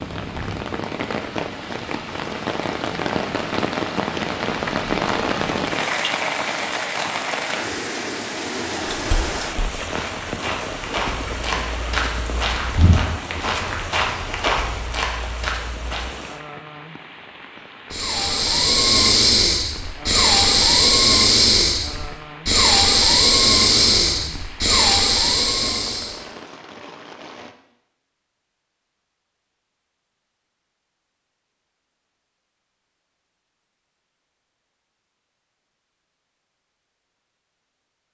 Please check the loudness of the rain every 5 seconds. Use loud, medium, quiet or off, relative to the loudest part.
loud, loud, medium, quiet, quiet, quiet, off, off.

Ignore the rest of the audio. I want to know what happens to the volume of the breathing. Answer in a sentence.
The volume of the breathing stays about the same.